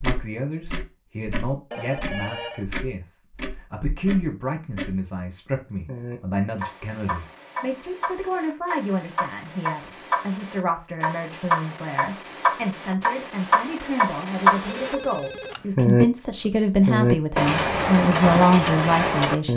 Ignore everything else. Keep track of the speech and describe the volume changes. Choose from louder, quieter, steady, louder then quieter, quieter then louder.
louder.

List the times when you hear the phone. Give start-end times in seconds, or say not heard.
1.7-2.6, 14.6-15.8.